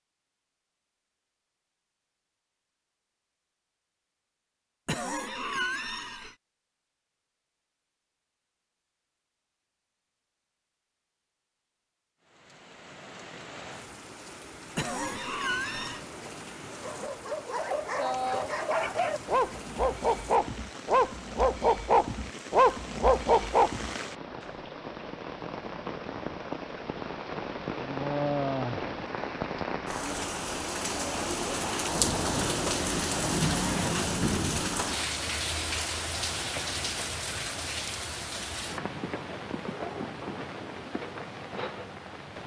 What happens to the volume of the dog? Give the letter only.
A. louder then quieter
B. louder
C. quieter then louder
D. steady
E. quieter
B.